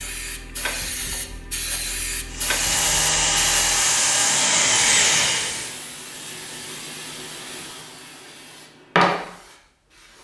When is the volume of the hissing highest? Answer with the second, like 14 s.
9 s.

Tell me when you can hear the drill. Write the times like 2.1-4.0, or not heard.
2.3-5.7.